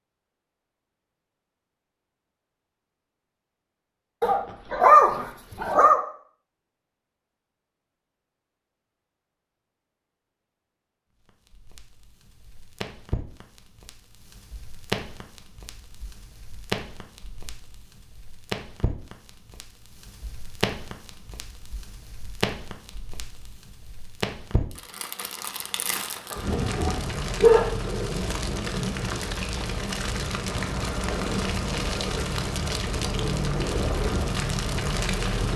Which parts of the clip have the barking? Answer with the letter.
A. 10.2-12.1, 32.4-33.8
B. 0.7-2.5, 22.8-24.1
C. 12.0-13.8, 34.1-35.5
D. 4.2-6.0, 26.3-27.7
D.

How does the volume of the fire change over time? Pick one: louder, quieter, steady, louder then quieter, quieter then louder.
louder.